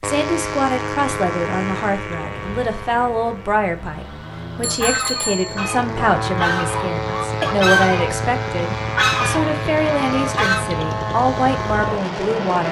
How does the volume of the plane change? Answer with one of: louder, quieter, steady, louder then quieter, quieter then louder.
quieter then louder.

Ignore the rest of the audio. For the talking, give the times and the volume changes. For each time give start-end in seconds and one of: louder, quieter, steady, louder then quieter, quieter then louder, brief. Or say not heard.
0.0-12.6 steady.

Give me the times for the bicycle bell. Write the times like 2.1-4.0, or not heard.
4.6-5.8.